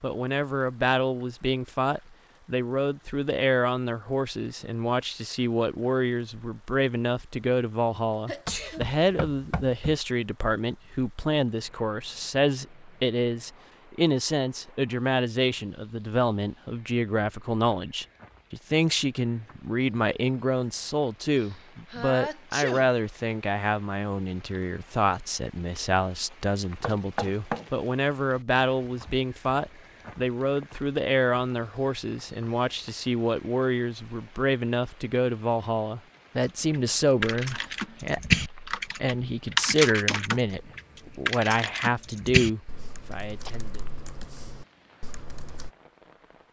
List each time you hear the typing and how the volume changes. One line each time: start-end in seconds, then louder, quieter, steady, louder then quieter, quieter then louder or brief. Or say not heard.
36.7-45.7 quieter.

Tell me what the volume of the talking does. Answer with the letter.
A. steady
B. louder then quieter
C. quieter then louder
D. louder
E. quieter
A.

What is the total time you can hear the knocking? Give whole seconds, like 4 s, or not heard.
2 s.